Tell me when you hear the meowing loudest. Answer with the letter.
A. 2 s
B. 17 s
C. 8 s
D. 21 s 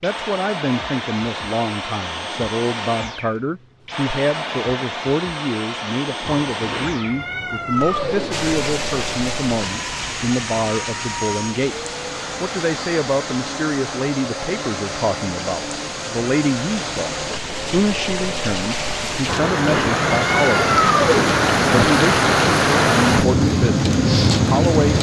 D.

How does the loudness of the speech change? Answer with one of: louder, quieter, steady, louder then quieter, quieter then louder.
steady.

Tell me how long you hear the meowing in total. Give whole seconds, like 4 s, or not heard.
5 s.